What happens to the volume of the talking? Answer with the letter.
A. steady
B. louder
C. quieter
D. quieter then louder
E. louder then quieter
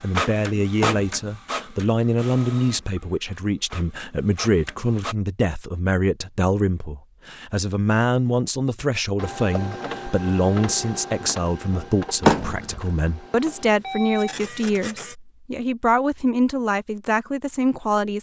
A.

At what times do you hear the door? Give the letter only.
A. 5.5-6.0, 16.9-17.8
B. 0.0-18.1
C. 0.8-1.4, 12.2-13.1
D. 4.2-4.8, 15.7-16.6
C.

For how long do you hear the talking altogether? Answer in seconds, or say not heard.
18 s.